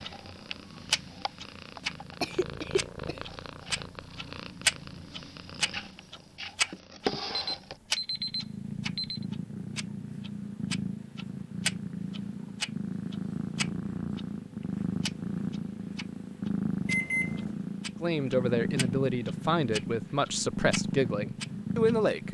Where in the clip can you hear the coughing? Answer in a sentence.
The coughing can be heard from 2.2 to 3.2 s.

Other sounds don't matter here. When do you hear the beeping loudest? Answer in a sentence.
The loudest moment of the beeping is at 17 seconds.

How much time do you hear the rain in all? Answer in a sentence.
You can't hear the rain here.